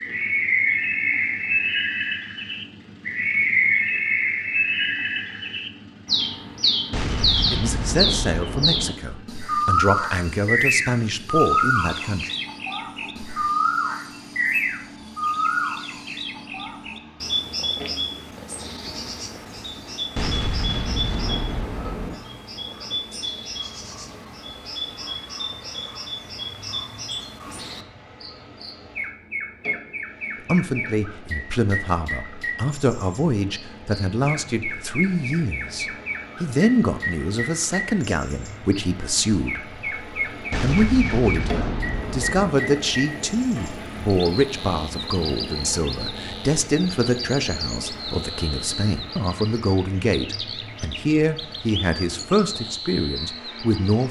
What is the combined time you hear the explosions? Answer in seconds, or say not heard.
6 s.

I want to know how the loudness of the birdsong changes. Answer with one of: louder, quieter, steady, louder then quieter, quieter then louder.
quieter.